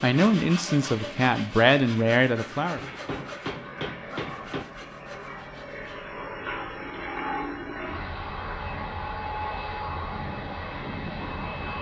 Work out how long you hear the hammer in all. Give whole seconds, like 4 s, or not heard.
2 s.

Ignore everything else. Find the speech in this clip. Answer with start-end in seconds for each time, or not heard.
0.0-2.8.